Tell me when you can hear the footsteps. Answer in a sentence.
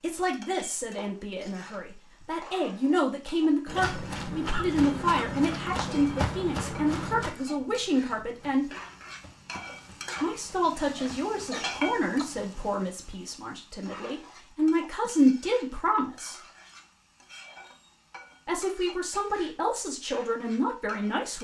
The footsteps can be heard from 3.6 to 12.8 s.